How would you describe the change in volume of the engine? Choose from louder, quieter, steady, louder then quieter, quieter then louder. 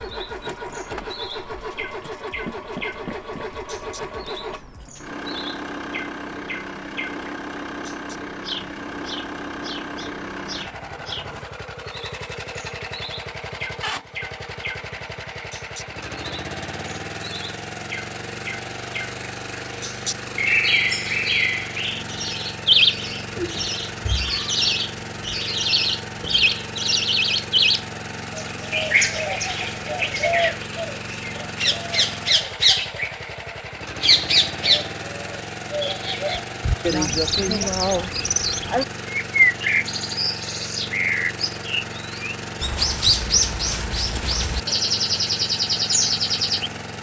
steady.